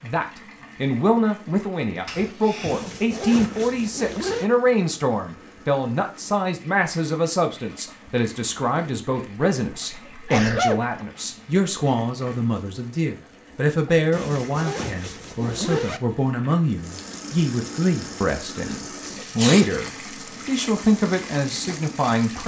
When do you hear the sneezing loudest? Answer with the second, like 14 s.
11 s.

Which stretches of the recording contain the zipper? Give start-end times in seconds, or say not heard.
2.6-4.5, 14.1-16.0.